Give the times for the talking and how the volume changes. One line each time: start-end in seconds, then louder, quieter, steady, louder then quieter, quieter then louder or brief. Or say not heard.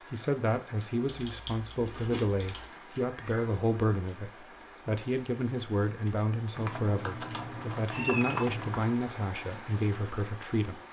0.0-10.8 steady.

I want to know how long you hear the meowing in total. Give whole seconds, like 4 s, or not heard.
2 s.